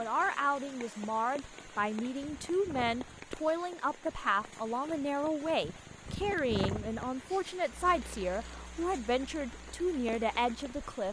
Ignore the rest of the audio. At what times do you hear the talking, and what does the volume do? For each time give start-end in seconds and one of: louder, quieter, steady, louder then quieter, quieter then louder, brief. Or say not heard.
0.0-11.0 steady.